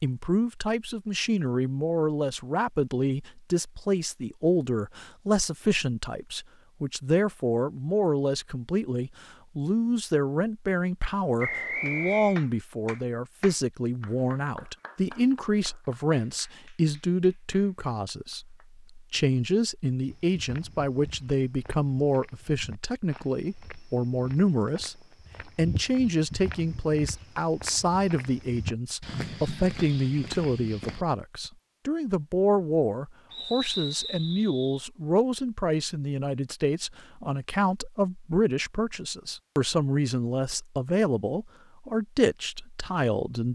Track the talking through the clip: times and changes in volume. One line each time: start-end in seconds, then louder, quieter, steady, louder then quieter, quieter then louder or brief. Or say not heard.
0.0-43.4 steady.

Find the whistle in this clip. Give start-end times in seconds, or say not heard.
11.4-12.4, 33.3-34.8.